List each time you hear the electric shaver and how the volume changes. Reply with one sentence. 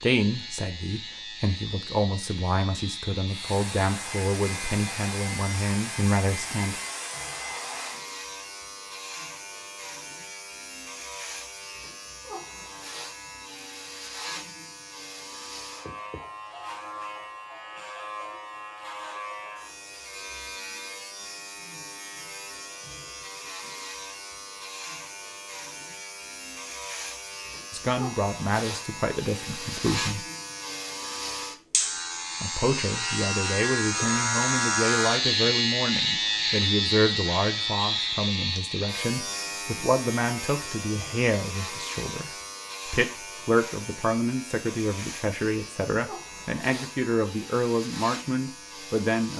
You can hear the electric shaver from 0.0 to 49.3 s, getting louder then quieter.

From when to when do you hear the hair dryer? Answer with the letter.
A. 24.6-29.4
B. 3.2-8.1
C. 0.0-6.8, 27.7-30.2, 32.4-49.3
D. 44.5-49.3
B.